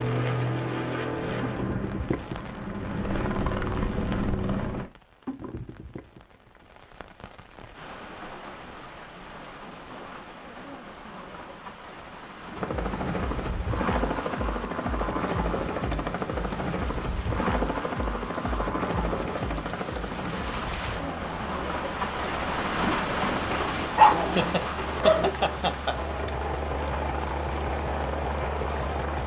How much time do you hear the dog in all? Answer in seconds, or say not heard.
2 s.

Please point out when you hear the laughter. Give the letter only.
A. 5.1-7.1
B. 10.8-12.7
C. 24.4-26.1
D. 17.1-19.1
C.